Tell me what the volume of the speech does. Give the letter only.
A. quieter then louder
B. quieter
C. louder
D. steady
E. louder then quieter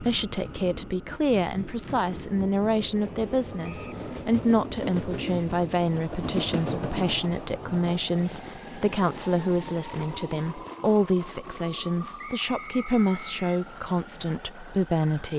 D.